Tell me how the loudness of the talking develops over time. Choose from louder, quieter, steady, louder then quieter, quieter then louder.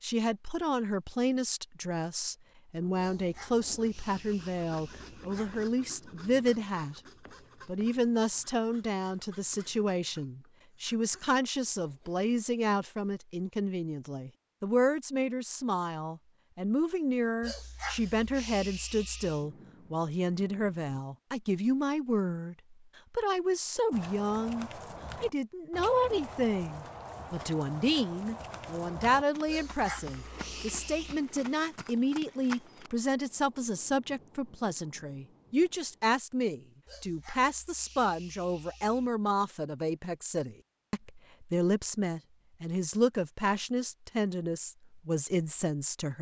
steady.